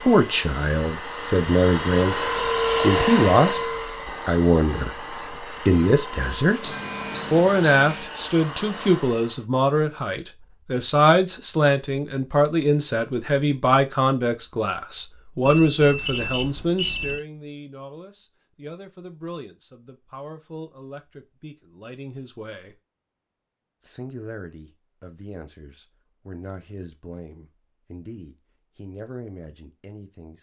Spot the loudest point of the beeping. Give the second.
7 s.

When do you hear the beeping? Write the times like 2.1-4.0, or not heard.
6.6-8.2, 15.4-17.2.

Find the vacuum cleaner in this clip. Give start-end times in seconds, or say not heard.
0.0-9.4.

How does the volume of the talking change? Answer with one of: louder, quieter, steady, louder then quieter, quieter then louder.
quieter.